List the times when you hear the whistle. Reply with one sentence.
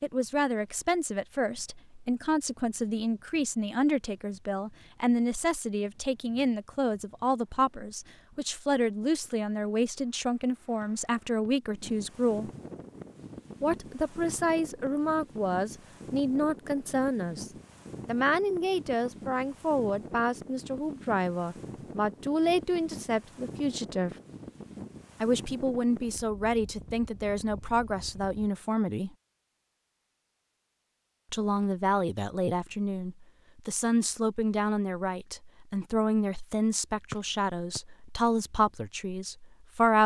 You can hear the whistle from 10.8 to 11.5 s and from 37.1 to 37.8 s.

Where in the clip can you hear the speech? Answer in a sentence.
You can hear the speech from 0.0 to 12.5 s, from 13.6 to 24.1 s, from 25.2 to 29.1 s and from 31.3 to 40.0 s.